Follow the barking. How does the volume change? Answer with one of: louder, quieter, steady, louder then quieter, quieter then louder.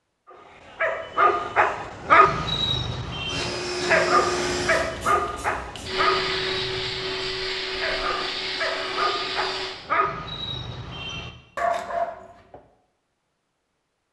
quieter.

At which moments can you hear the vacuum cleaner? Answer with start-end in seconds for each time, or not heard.
3.2-9.8.